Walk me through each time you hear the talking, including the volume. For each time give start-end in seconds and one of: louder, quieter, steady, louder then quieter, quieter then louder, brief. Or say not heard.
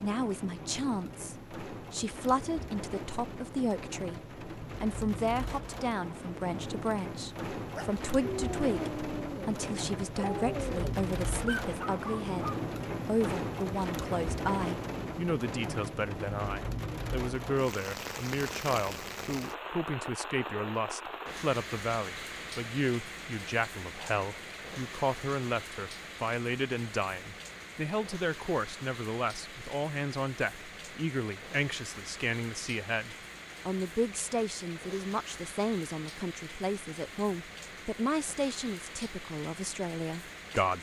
0.0-40.7 steady.